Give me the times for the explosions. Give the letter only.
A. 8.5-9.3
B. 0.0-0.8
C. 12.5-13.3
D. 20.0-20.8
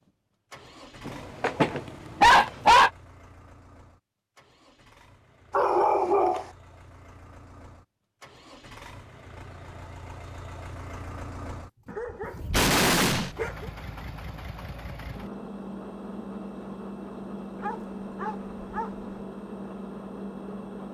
C.